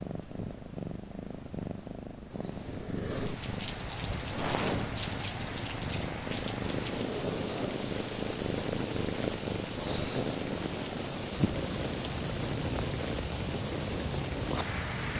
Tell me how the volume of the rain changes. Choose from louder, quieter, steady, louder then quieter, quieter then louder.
steady.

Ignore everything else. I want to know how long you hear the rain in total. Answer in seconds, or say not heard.
12 s.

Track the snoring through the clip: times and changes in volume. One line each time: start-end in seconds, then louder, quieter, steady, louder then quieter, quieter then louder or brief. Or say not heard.
not heard.